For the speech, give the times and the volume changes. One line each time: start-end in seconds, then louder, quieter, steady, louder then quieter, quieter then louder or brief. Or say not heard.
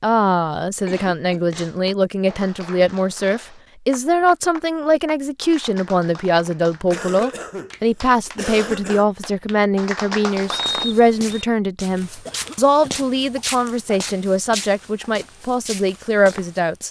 0.0-16.8 steady.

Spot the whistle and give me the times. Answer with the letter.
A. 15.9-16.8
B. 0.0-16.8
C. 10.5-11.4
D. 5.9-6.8
C.